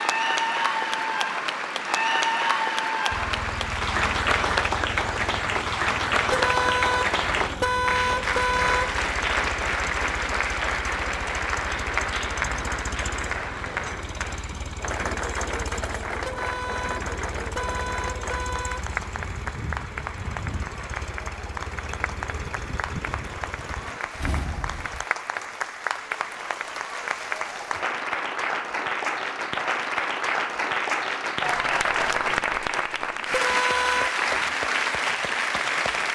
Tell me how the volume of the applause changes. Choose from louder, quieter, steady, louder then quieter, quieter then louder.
quieter then louder.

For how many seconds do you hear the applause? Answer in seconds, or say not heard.
36 s.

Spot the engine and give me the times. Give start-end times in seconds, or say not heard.
3.1-25.1.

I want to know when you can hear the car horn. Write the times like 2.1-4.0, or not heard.
6.3-9.0, 16.2-18.9, 33.3-34.5.